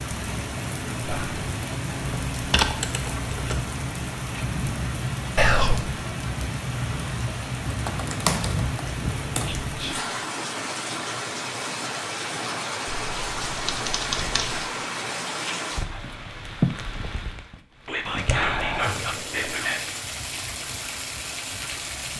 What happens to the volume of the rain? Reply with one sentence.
The volume of the rain stays about the same.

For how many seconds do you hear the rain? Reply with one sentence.
The rain can be heard for 22 seconds in total.